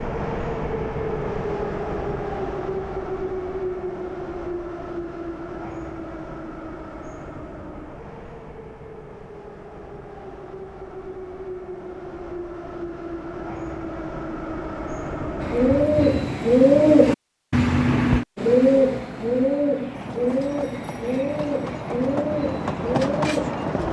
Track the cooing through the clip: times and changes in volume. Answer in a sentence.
You can hear the cooing from 15.4 to 23.8 s, getting quieter.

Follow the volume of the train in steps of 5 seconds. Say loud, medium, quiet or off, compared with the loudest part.
loud, medium, medium, loud, loud.